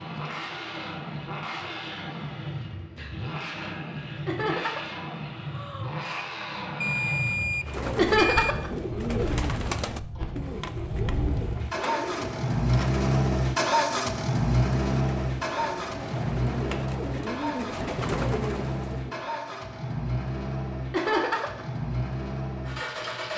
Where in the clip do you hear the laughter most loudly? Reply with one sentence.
The loudest moment of the laughter is at 8 seconds.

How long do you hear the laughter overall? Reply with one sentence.
You can hear the laughter for 2 seconds altogether.